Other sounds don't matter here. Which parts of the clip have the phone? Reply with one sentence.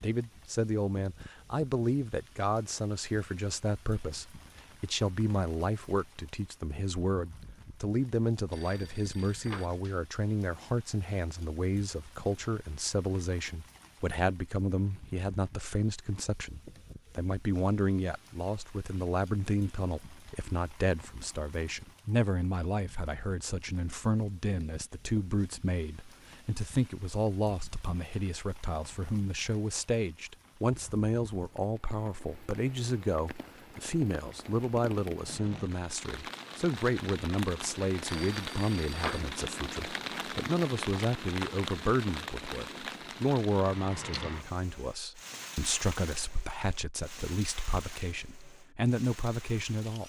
The phone can be heard from 8.5 to 10.0 s and from 38.0 to 39.3 s.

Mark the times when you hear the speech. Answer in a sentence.
You can hear the speech from 0.0 to 50.0 s.